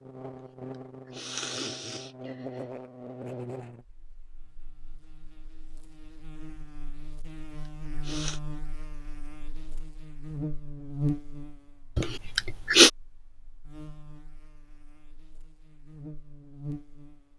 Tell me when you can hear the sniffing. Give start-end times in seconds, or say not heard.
1.1-2.6, 8.0-8.4, 11.9-12.9.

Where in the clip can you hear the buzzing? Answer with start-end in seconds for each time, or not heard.
0.0-17.3.